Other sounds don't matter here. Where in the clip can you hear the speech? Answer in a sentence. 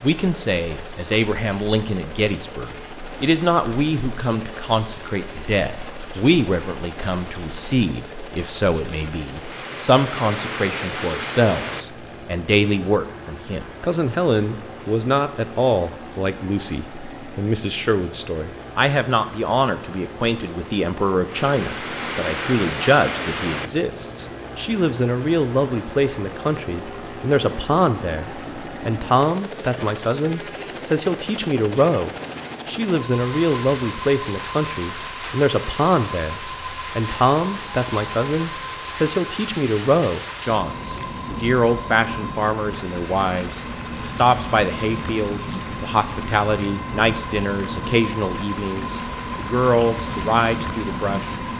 The speech can be heard from 0.0 to 51.4 s.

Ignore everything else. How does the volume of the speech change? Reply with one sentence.
The volume of the speech stays about the same.